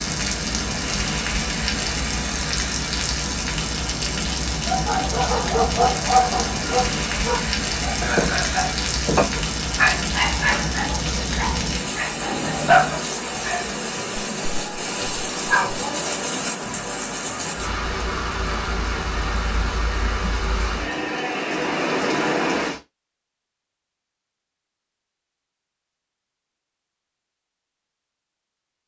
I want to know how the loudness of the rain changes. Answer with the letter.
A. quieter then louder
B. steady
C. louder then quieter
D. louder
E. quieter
B.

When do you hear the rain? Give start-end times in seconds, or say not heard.
0.0-22.8.